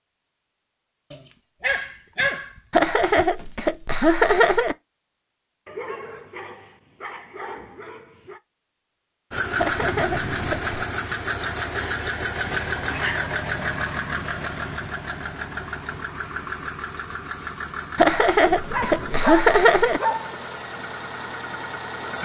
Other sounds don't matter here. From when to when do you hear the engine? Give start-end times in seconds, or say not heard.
9.3-22.1.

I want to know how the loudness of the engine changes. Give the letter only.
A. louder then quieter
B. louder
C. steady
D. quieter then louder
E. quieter
E.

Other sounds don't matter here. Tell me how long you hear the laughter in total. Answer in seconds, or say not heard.
5 s.